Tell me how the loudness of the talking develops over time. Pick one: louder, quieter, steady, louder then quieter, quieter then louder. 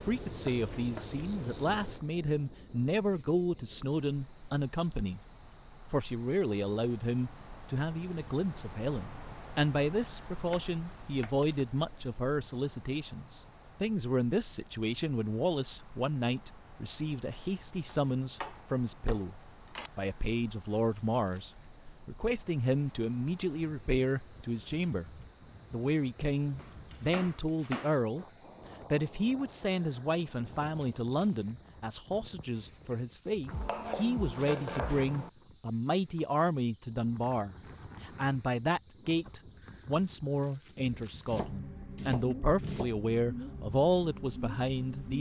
steady.